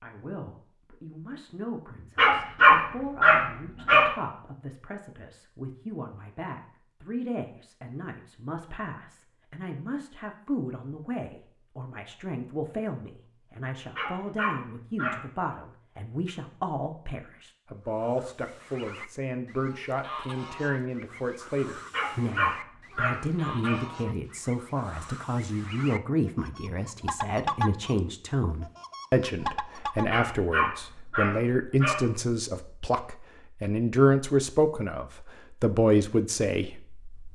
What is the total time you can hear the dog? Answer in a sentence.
You can hear the dog for 7 seconds altogether.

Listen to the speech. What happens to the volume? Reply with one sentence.
The volume of the speech goes up.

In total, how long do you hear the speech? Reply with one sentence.
You can hear the speech for 37 seconds altogether.